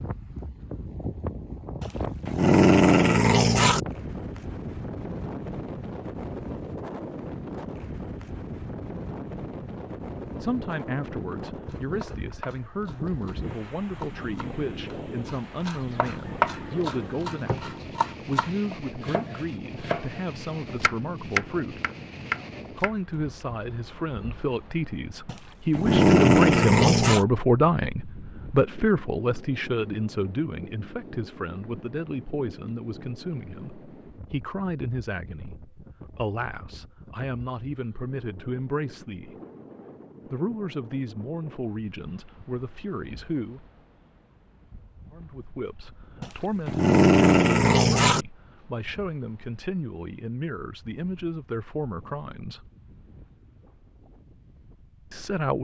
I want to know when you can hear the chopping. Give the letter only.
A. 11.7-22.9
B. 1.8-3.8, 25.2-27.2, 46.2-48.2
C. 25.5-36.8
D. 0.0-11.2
A.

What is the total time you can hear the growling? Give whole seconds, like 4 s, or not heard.
6 s.